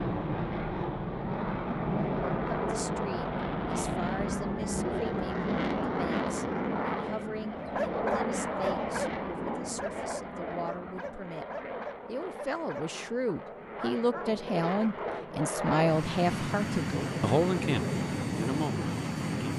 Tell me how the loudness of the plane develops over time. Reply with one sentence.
The volume of the plane goes down, then up.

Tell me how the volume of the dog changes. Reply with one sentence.
The volume of the dog goes down.